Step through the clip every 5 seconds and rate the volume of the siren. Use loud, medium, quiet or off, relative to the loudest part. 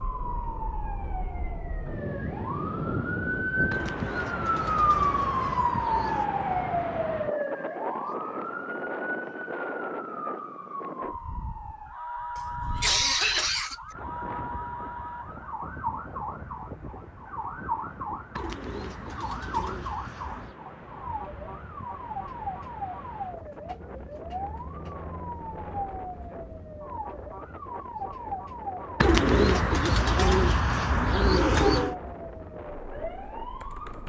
loud, loud, medium, medium, medium, medium, medium.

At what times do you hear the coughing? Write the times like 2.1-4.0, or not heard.
12.3-13.8.